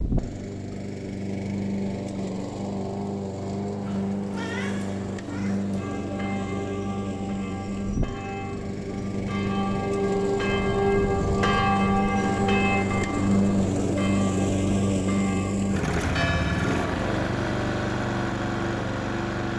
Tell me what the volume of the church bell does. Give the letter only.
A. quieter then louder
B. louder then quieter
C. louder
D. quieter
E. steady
B.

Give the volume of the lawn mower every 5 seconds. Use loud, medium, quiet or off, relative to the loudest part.
medium, medium, loud, loud.